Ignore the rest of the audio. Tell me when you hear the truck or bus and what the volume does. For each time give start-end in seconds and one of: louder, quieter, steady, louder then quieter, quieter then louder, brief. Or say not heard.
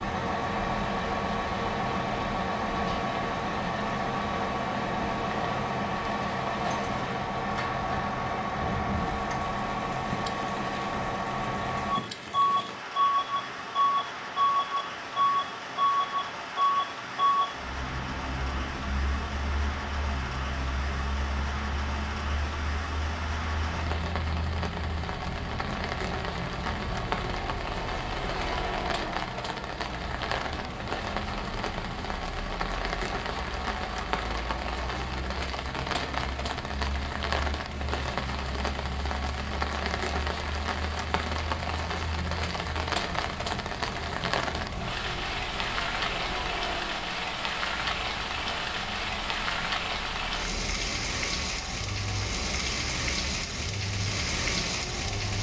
0.0-55.3 quieter.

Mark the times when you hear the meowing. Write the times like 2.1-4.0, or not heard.
not heard.